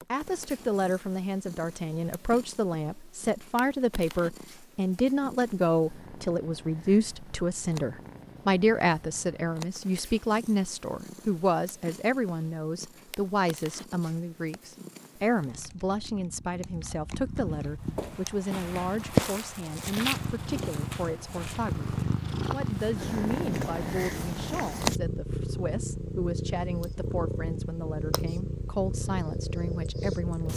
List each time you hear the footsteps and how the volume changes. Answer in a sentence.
You can hear the footsteps from 17.4 to 25.0 s, getting quieter.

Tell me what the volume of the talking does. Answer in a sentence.
The loudness of the talking goes down.